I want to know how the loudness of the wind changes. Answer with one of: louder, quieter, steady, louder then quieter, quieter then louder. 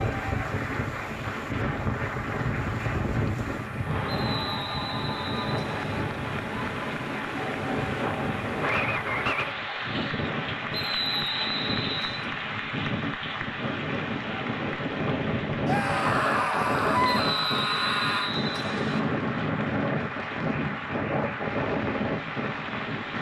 steady.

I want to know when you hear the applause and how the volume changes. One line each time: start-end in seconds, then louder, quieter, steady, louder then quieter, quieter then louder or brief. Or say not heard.
0.0-23.1 steady.